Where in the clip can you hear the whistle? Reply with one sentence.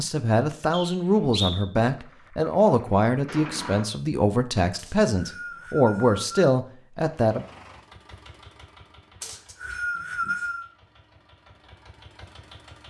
The whistle can be heard from 0.7 to 1.6 s, from 4.8 to 6.5 s and from 9.2 to 10.7 s.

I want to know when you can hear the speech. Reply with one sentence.
The speech can be heard from 0.0 to 7.5 s.